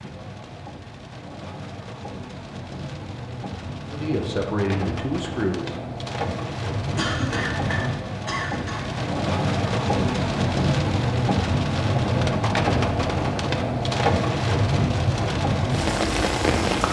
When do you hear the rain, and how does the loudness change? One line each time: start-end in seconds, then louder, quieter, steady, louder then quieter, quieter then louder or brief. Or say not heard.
0.0-16.8 louder.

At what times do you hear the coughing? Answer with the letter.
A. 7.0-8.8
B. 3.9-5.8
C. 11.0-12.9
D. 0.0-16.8
A.